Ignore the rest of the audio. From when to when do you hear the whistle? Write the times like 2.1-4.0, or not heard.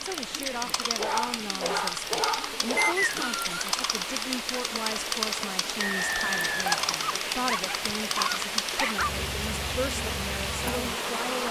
2.8-3.5, 5.8-7.1.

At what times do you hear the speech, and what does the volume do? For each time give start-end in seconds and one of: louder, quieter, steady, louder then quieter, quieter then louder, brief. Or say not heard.
0.0-11.4 steady.